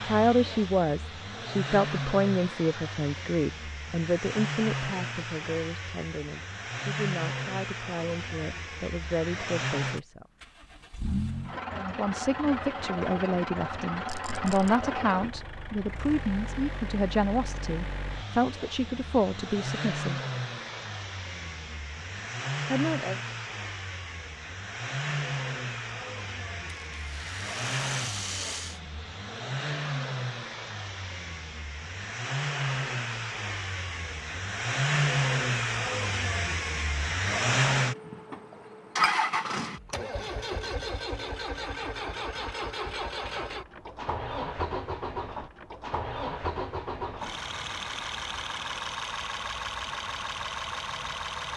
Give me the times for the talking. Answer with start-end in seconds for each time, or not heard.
0.0-10.2, 11.7-20.2, 22.7-23.1.